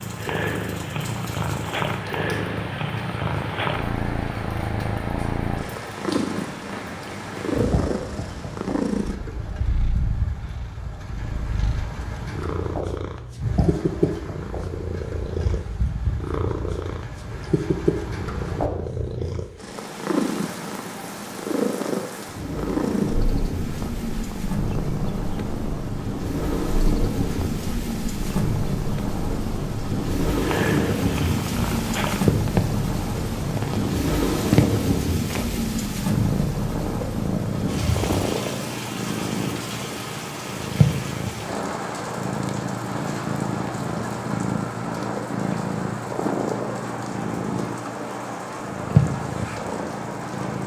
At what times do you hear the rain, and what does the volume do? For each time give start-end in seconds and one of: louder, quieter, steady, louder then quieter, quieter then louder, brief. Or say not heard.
0.0-50.6 louder then quieter.